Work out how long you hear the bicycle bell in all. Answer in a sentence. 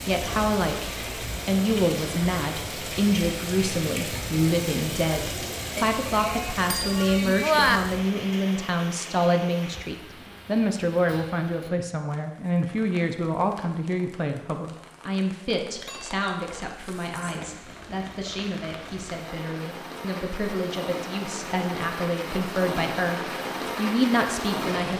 The bicycle bell can be heard for 3 seconds in total.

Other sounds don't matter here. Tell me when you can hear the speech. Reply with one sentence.
The speech can be heard from 0.1 to 24.9 s.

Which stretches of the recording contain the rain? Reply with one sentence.
The rain can be heard from 0.0 to 24.9 s.